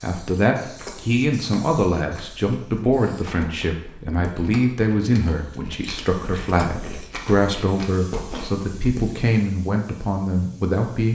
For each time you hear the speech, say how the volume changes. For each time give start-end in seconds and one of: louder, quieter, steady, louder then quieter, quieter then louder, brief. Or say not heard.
0.0-11.0 steady.